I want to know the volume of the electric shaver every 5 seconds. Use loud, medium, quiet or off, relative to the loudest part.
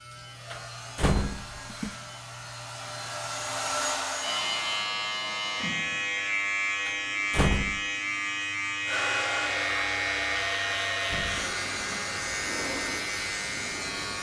medium, loud, loud.